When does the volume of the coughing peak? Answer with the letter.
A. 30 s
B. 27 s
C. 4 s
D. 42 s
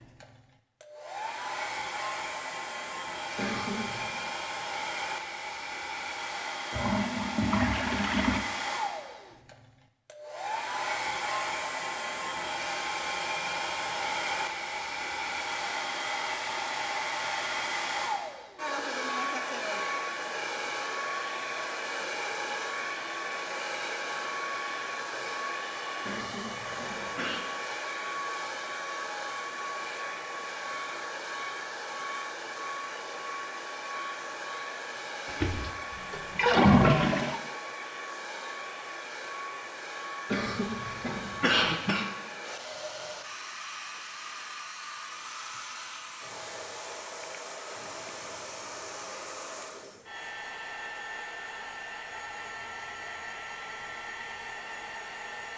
D.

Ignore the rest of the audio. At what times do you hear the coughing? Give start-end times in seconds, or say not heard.
3.4-4.2, 26.0-27.4, 40.3-42.0.